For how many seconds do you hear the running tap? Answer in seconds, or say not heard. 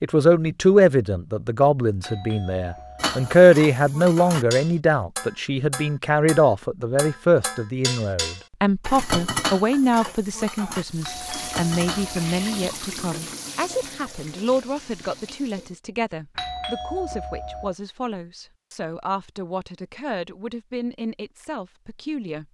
5 s.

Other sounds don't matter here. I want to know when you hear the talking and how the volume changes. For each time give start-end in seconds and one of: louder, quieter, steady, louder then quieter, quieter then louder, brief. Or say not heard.
0.0-22.4 quieter.